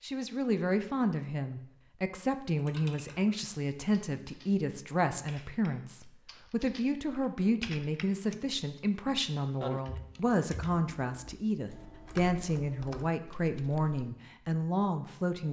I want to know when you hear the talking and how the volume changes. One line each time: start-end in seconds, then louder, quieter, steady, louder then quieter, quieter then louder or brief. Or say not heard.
0.0-15.4 steady.